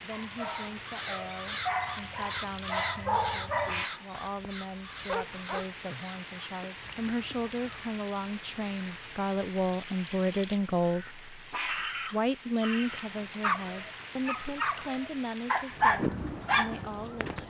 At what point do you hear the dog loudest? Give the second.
16 s.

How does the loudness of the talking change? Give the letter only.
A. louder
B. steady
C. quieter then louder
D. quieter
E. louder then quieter
E.